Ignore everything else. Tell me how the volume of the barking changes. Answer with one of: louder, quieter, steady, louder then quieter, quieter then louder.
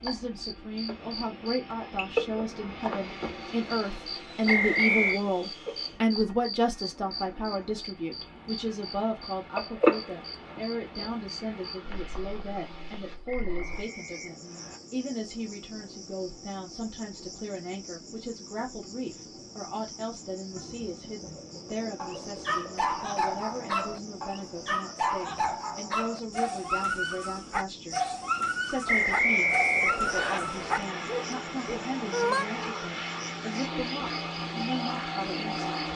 steady.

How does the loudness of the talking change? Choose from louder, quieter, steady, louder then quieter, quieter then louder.
quieter.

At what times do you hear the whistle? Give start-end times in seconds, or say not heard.
4.5-5.2, 13.2-14.8, 28.9-30.4.